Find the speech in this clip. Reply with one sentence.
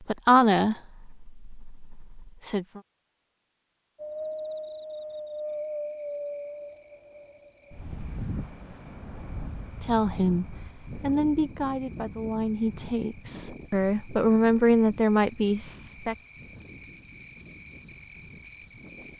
The speech can be heard from 0.0 to 2.8 s and from 9.8 to 16.1 s.